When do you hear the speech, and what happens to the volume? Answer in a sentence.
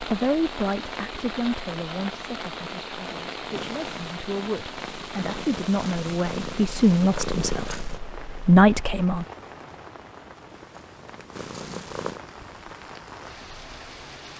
The speech can be heard from 0.0 to 9.2 s, getting quieter then louder.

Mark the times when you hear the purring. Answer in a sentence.
You can hear the purring from 3.5 to 8.0 s and from 10.6 to 12.2 s.